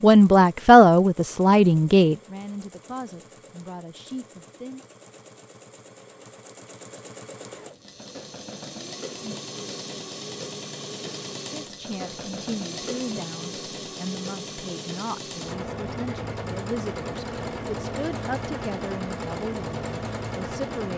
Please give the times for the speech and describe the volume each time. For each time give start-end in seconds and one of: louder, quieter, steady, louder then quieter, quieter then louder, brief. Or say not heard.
0.0-4.8 quieter
11.5-20.9 steady.